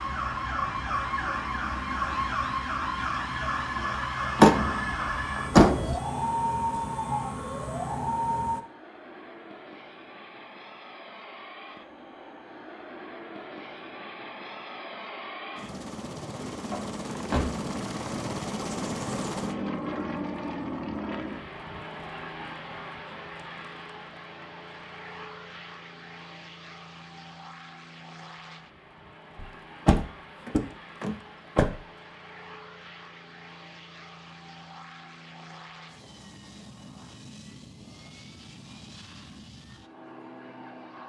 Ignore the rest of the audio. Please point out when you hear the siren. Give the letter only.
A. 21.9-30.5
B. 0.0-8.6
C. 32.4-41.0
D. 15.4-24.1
B.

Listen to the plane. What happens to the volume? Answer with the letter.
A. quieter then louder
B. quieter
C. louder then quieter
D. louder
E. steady
C.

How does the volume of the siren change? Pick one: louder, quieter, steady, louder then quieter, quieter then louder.
steady.